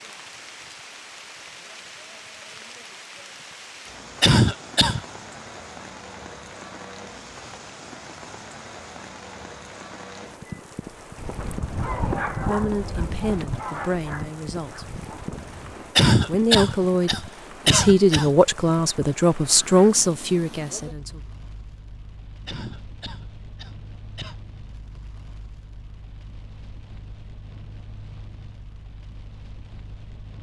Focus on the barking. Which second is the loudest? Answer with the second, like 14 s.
12 s.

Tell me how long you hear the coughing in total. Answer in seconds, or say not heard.
5 s.